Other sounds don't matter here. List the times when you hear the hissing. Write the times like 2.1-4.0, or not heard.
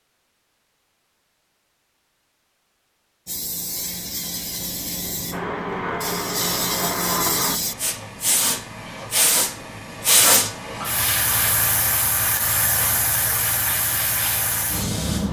3.2-15.2.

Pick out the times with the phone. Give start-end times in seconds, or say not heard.
not heard.